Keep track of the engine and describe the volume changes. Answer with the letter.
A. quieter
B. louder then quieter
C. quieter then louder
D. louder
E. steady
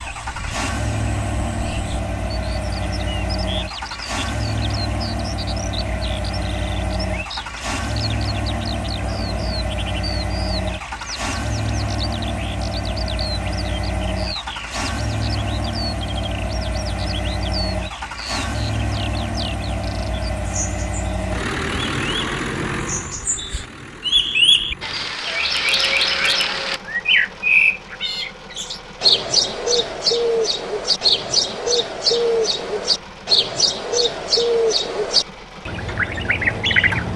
A.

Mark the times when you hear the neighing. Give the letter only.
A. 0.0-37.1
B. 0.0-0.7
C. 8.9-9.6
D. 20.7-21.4
C.